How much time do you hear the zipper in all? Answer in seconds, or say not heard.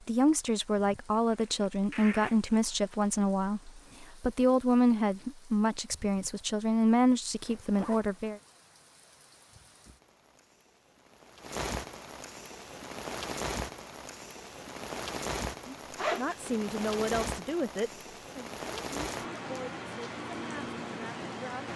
3 s.